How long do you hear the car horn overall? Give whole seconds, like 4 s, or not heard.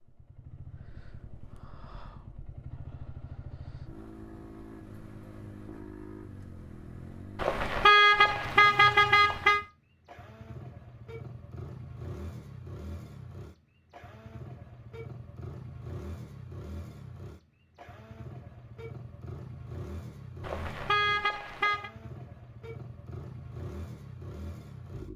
4 s.